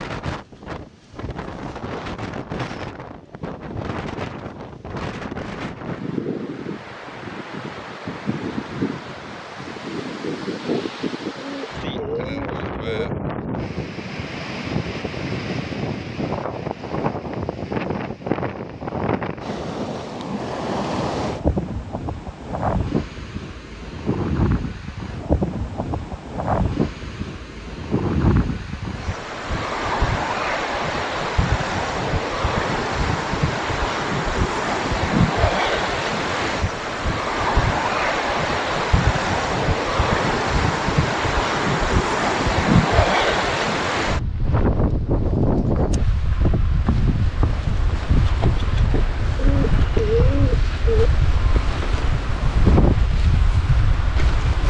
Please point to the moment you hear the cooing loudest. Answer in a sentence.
The volume of the cooing peaks at 50 seconds.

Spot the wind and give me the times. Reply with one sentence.
You can hear the wind from 0.0 to 54.6 s.